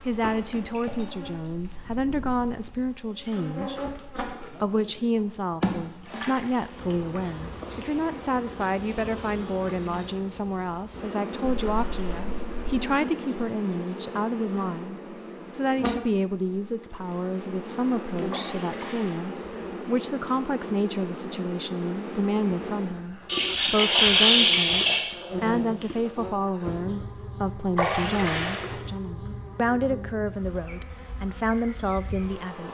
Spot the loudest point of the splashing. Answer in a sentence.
The volume of the splashing peaks at 24 seconds.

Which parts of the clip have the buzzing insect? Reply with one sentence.
The buzzing insect can be heard from 0.0 to 32.6 s.